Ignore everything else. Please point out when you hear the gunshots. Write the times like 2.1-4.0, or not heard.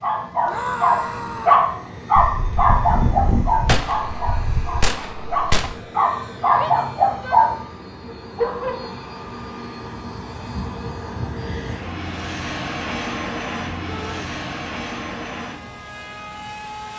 2.1-5.7.